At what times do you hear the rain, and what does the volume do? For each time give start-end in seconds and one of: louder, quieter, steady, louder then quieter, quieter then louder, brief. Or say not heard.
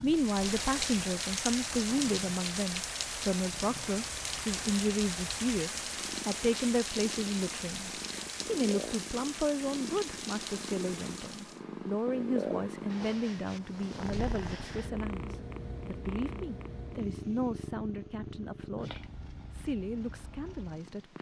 0.0-11.7 quieter.